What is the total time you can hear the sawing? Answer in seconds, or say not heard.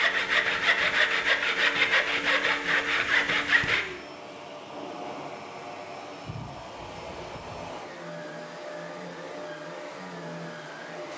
4 s.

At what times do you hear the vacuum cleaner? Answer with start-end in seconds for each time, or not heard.
0.0-11.1.